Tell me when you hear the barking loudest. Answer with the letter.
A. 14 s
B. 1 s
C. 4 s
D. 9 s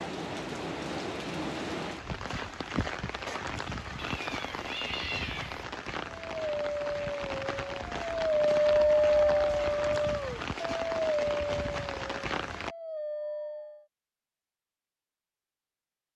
D.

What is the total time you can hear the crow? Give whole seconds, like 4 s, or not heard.
not heard.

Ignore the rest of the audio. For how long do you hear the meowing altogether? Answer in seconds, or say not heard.
2 s.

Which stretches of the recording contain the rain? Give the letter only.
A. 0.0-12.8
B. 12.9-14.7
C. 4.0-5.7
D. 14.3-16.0
A.